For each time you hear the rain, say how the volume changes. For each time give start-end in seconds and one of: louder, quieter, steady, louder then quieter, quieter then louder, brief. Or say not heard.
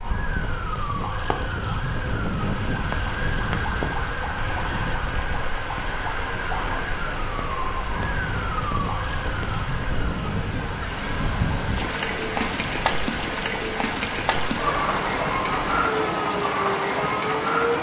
0.0-17.7 louder.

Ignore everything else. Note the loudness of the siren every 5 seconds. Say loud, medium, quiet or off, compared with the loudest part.
loud, loud, medium, loud.